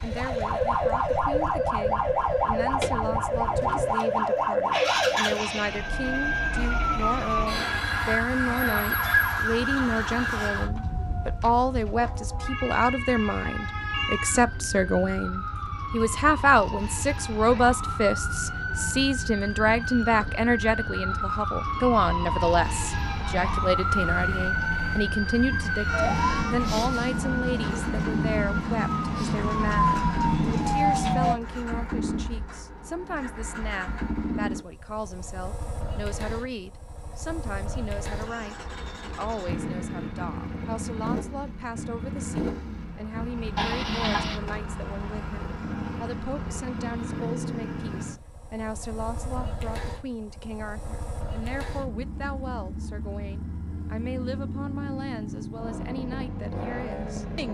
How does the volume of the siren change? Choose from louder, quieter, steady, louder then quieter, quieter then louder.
quieter then louder.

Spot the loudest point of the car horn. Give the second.
44 s.